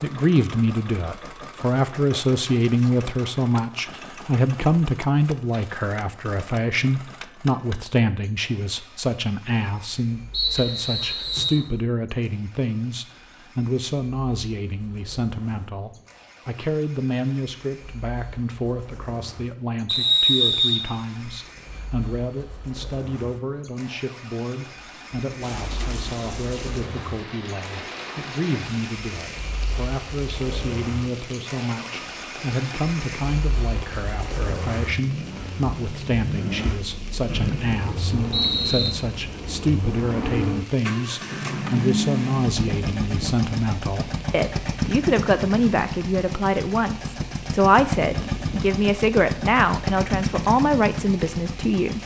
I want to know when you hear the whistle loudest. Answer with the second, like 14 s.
20 s.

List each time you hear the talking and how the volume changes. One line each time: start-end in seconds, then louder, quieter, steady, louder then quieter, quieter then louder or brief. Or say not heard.
0.0-52.0 quieter then louder.